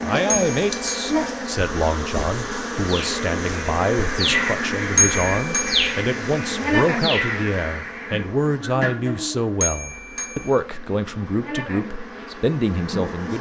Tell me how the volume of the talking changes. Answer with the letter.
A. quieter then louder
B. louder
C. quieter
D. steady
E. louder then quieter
D.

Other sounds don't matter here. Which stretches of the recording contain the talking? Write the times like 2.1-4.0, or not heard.
0.0-13.3.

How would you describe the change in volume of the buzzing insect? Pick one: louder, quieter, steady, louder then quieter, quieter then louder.
quieter.